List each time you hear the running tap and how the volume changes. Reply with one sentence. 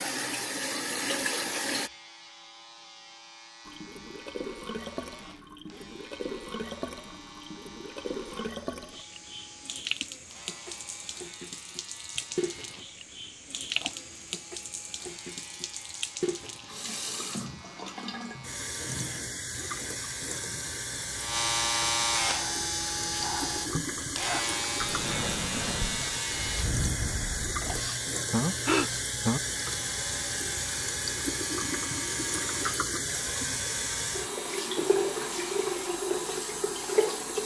The running tap can be heard briefly from 0.0 to 1.9 s; and from 3.6 to 37.4 s, getting louder.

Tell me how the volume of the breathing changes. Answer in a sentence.
The loudness of the breathing goes up.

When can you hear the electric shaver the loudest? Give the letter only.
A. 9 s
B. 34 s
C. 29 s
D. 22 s
D.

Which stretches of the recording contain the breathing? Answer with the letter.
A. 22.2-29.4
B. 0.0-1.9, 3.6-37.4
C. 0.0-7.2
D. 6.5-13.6
A.